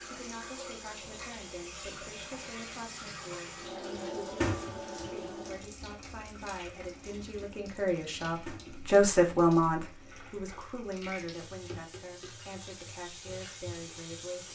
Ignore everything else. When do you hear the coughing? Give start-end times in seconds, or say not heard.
not heard.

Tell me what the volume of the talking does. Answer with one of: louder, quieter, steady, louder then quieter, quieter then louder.
louder then quieter.